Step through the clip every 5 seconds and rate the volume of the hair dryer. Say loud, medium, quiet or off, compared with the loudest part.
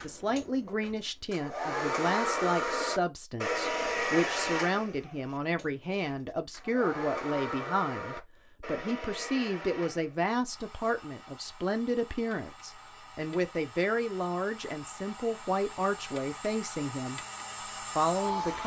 loud, medium, quiet, medium.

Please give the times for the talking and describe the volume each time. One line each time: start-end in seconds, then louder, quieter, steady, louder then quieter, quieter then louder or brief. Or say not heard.
0.0-17.2 steady
17.9-18.6 brief.